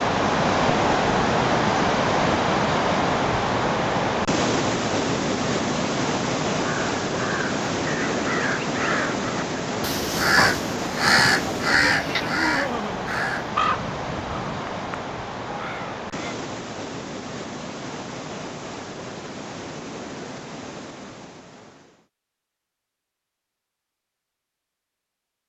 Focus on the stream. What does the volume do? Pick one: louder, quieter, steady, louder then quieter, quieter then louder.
quieter.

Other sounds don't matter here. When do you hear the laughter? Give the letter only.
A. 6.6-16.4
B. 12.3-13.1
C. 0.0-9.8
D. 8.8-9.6
B.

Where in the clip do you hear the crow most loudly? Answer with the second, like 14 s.
11 s.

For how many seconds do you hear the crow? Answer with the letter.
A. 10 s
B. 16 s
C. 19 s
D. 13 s
A.